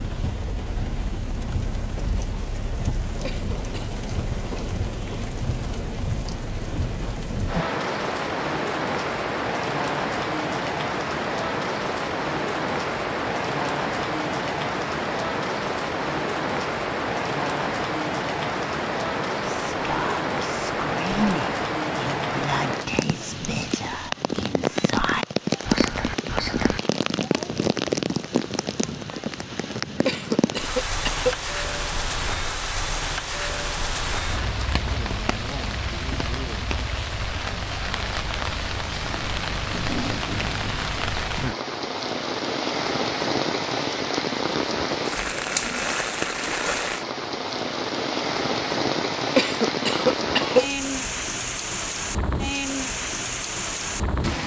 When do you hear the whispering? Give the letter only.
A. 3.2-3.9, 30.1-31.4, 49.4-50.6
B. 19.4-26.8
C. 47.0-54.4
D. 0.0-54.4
B.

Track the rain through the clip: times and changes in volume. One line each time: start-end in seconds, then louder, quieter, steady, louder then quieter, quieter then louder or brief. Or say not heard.
0.0-54.4 steady.